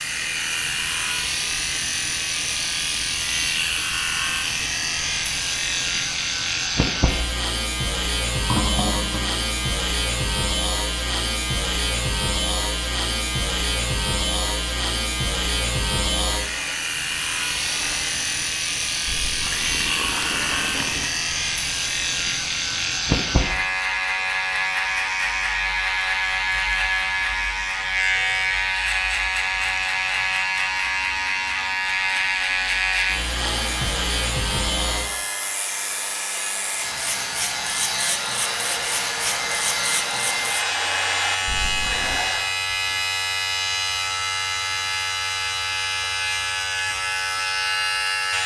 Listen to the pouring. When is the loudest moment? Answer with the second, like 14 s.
9 s.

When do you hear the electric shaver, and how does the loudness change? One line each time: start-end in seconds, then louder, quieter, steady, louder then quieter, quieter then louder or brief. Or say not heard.
0.0-48.4 steady.